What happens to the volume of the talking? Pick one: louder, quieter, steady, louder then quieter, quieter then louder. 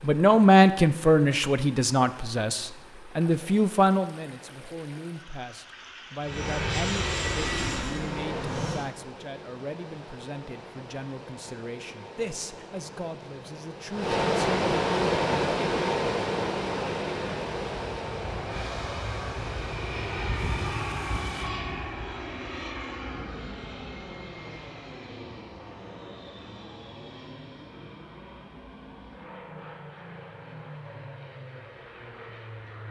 quieter.